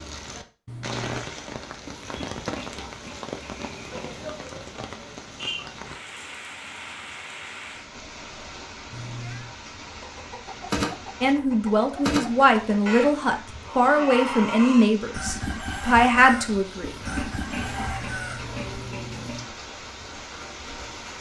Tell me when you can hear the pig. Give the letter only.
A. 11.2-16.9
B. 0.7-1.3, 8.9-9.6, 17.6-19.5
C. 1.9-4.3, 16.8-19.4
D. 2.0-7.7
C.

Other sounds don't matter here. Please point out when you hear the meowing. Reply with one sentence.
The meowing can be heard from 0.7 to 1.3 s, from 8.9 to 9.6 s and from 17.6 to 19.5 s.